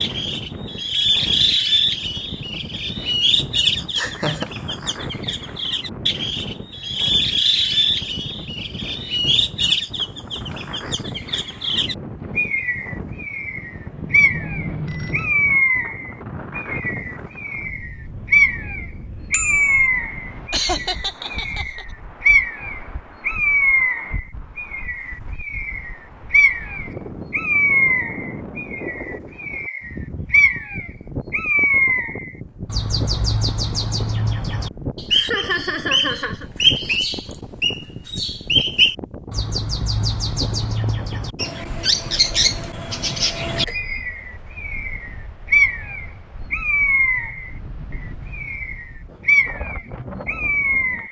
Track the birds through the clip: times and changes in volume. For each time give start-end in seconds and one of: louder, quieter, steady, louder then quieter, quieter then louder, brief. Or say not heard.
0.0-51.0 steady.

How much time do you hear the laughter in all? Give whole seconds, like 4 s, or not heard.
3 s.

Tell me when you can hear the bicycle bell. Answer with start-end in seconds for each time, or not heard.
13.9-15.3, 19.3-19.8, 43.5-44.0.